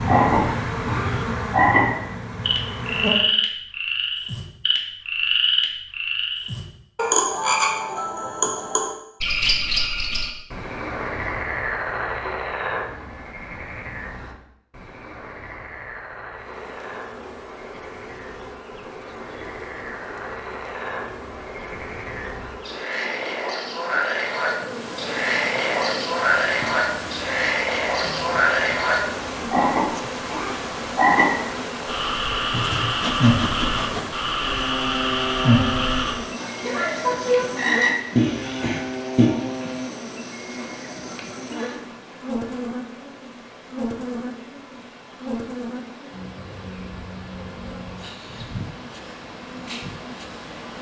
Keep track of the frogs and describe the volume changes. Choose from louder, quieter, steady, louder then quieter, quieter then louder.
quieter then louder.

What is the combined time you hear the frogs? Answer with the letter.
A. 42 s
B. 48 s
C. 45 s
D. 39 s
D.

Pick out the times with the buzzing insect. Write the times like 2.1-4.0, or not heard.
0.0-3.2, 16.4-50.7.